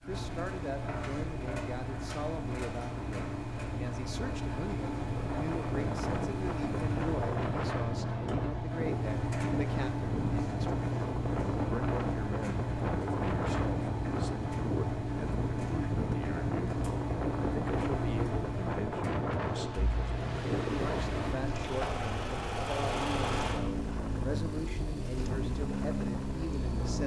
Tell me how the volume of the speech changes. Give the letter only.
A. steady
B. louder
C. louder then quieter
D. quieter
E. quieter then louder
A.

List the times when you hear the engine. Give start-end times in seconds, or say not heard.
0.0-27.0.